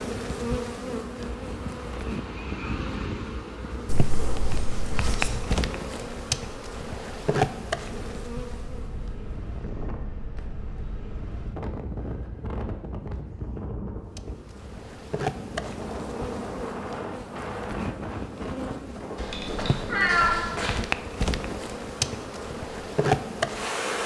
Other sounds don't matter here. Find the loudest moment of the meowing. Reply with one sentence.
The volume of the meowing peaks at 20 seconds.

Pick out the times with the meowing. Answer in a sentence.
The meowing can be heard from 3.9 to 5.4 s and from 19.1 to 20.8 s.